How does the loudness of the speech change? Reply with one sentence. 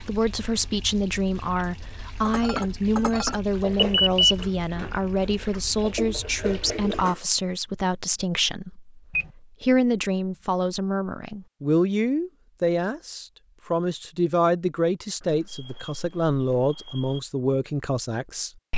The loudness of the speech stays about the same.